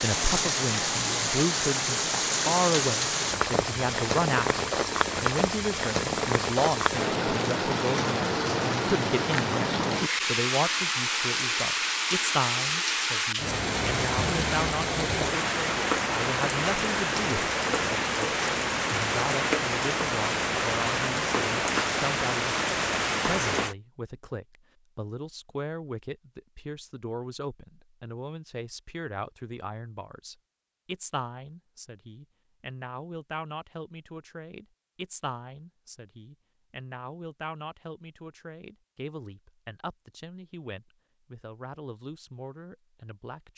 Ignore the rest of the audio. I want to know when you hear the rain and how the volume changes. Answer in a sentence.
You can hear the rain from 0.0 to 23.8 s, at a steady volume.